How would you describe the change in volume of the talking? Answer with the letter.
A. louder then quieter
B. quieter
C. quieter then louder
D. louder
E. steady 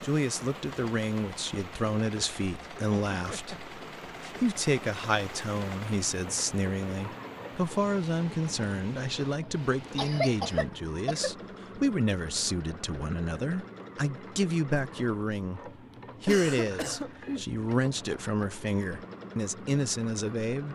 E.